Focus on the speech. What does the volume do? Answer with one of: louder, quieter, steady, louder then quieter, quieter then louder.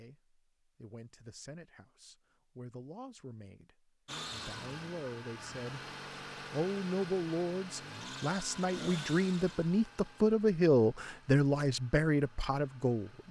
louder.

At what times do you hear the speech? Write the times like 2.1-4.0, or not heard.
0.0-5.8, 6.5-13.2.